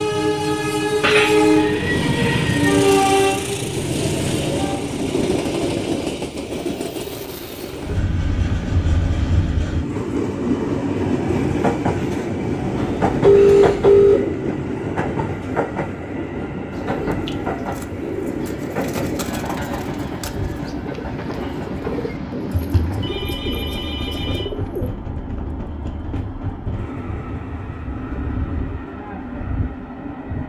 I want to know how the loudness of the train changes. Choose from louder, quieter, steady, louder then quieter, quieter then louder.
quieter.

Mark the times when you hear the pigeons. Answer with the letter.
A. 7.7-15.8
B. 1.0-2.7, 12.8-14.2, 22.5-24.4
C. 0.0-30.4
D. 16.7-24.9
D.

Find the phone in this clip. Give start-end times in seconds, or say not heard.
1.0-2.7, 12.8-14.2, 22.5-24.4.